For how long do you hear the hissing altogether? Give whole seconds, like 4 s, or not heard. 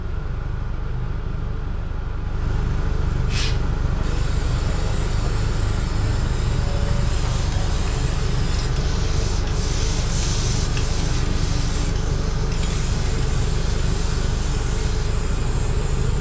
13 s.